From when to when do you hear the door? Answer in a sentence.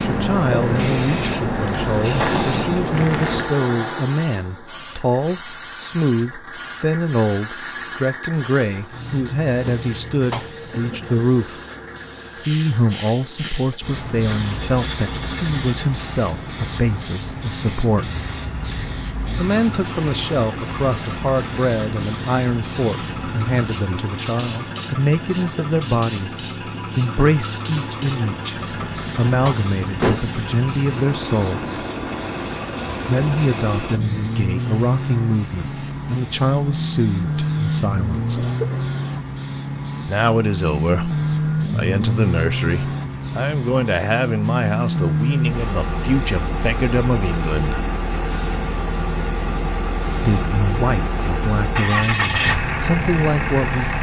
The door can be heard from 9.7 to 10.5 s and from 28.8 to 30.4 s.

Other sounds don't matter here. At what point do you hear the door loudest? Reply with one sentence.
The loudest moment of the door is at 30 seconds.